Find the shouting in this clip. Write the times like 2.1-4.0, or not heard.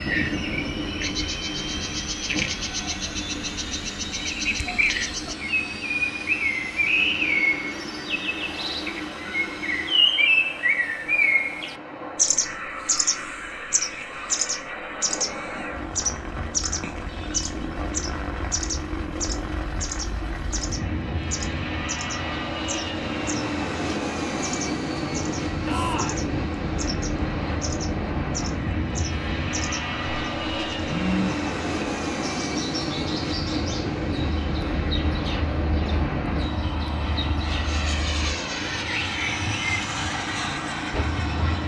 25.6-26.2.